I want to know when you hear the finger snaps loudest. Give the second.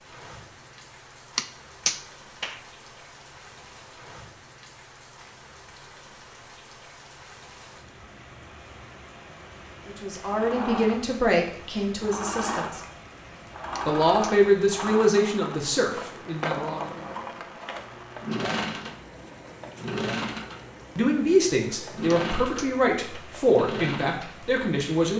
2 s.